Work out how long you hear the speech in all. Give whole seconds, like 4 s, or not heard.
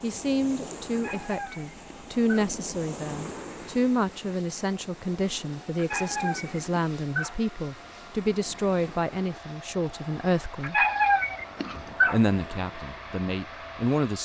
13 s.